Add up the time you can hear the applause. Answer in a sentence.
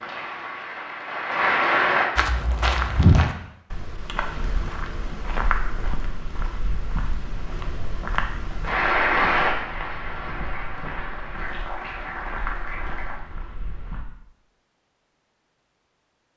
The applause can be heard for 7 seconds in total.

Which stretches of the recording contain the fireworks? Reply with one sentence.
You can't hear the fireworks here.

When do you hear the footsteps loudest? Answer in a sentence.
The loudest moment of the footsteps is at 3 seconds.